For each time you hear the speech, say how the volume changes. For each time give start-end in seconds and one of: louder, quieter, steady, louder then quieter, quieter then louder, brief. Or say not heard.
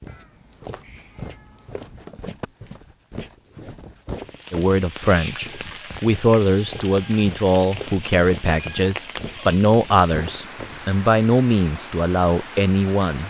4.5-13.2 steady.